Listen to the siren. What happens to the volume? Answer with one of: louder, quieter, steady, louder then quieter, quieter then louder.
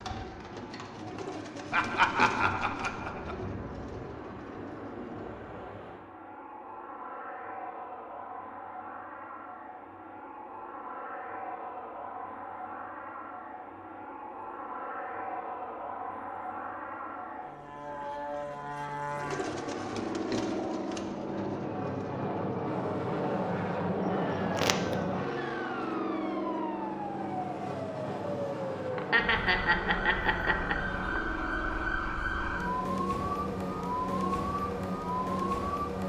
louder.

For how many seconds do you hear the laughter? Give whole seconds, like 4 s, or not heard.
4 s.